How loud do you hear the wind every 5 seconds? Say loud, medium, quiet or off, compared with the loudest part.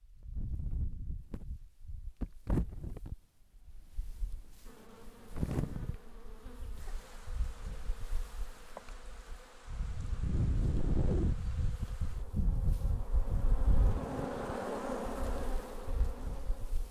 medium, medium, loud, quiet.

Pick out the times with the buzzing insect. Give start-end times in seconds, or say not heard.
4.6-16.8.